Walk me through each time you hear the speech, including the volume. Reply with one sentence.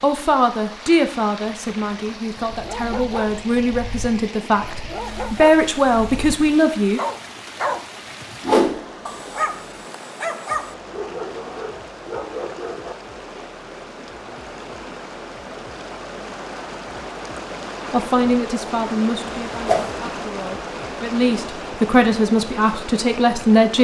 You can hear the speech from 0.0 to 7.0 s, getting quieter then louder; and from 17.9 to 23.7 s, getting quieter then louder.